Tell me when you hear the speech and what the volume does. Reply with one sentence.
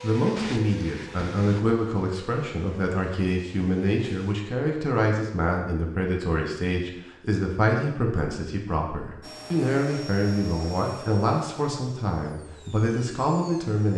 The speech can be heard from 0.0 to 13.9 s, at a steady volume.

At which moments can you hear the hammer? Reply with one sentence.
The hammer can't be heard in this clip.